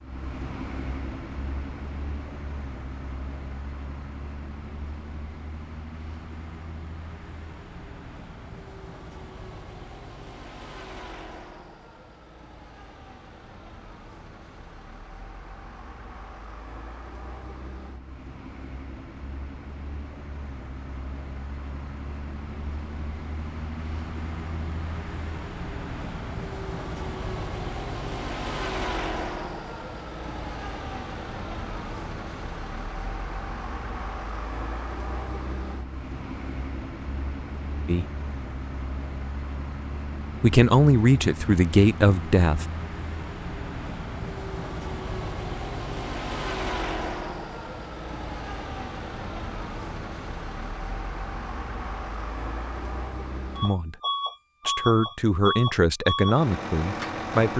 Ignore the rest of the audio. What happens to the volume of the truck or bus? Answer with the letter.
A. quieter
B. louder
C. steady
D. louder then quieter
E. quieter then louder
B.